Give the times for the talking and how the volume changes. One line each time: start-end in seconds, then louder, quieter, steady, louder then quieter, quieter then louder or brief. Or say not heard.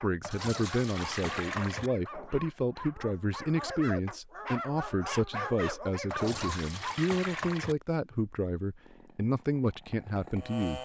0.0-10.8 steady.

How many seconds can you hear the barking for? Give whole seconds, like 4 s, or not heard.
7 s.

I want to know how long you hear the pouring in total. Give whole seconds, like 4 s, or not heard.
3 s.